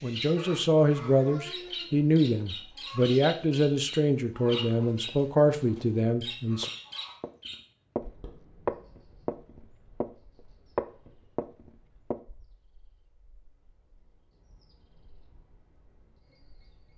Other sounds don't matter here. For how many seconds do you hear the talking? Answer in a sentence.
You can hear the talking for 7 seconds altogether.